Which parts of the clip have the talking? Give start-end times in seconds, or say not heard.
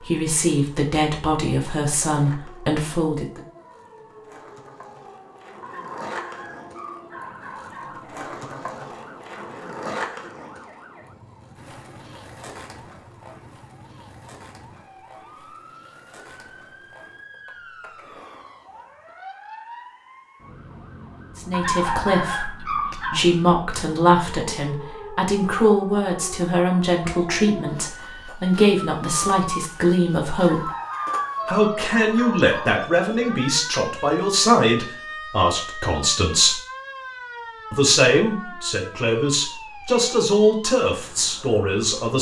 0.1-3.4, 21.4-30.7, 31.4-36.6, 37.7-42.1.